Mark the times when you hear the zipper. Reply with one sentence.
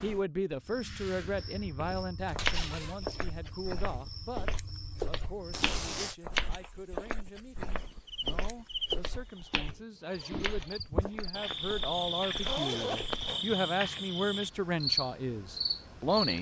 The zipper can be heard from 2.2 to 3.0 s, from 5.5 to 6.2 s and from 11.9 to 13.4 s.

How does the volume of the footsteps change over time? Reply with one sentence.
The loudness of the footsteps goes down.